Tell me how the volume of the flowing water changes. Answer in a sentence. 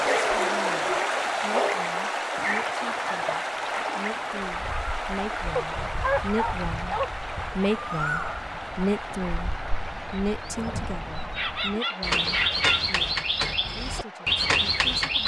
The loudness of the flowing water goes down.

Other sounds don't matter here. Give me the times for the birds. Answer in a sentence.
You can hear the birds from 0.0 to 15.2 s.